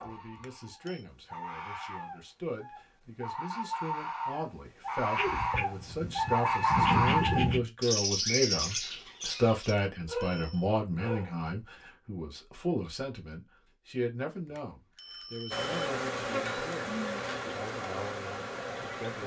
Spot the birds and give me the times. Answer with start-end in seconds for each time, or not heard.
0.0-9.8.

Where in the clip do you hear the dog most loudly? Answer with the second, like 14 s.
7 s.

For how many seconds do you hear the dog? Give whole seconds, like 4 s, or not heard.
4 s.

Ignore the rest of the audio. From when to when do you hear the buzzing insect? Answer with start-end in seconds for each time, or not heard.
15.5-19.2.